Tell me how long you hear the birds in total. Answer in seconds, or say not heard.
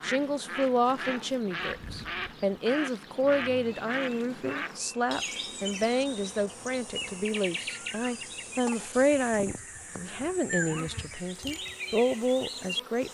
13 s.